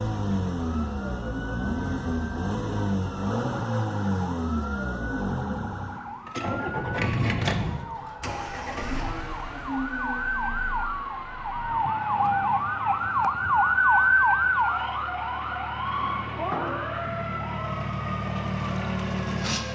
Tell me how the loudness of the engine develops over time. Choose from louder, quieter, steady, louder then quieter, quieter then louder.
quieter then louder.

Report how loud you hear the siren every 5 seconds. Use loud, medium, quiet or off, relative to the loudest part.
quiet, quiet, loud, medium.